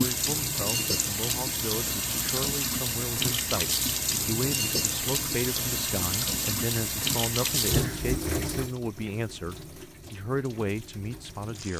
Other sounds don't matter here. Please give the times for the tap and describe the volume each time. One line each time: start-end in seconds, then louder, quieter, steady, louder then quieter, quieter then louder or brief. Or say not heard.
0.0-11.7 quieter.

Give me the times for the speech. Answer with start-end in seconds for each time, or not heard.
0.0-11.7.